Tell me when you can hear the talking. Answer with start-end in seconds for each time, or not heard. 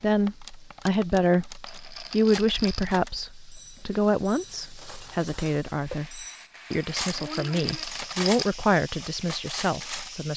0.0-10.3.